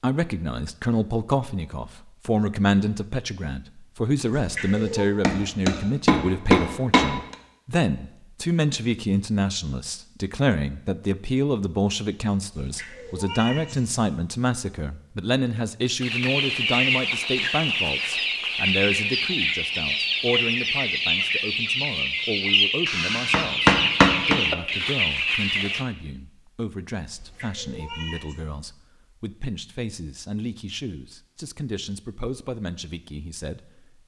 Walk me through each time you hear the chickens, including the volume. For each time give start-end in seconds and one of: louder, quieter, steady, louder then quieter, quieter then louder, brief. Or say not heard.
16.0-25.9 steady.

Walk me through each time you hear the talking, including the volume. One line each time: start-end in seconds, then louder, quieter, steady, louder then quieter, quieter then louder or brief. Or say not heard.
0.0-34.0 quieter.